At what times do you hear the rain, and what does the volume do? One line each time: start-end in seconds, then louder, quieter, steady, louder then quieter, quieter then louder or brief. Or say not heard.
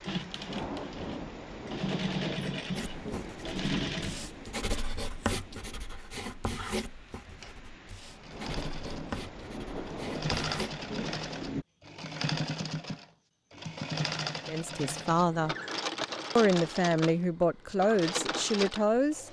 0.0-11.7 quieter then louder.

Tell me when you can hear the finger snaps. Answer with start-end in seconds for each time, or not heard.
not heard.